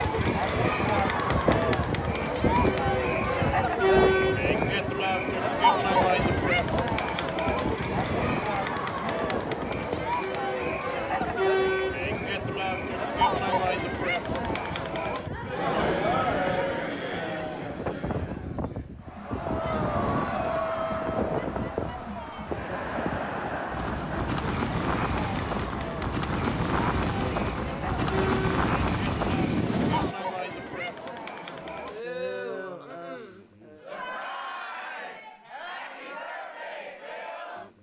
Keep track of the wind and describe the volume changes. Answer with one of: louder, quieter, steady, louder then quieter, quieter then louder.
quieter then louder.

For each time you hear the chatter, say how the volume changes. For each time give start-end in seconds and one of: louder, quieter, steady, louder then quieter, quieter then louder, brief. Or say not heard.
0.0-37.7 quieter.